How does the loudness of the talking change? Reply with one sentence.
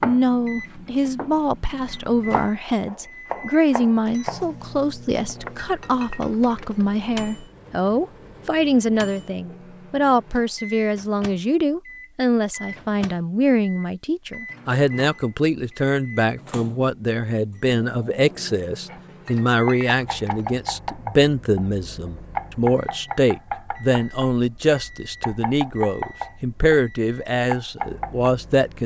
The loudness of the talking stays about the same.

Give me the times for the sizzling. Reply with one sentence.
You can't hear the sizzling here.